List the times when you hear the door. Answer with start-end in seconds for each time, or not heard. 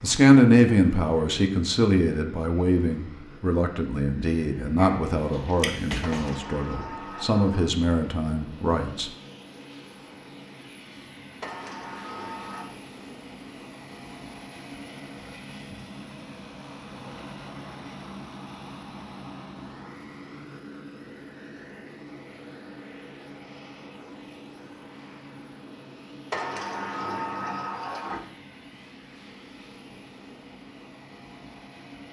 6.0-7.7, 11.4-12.7, 26.3-28.2.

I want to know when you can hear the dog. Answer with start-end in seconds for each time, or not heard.
4.8-6.3.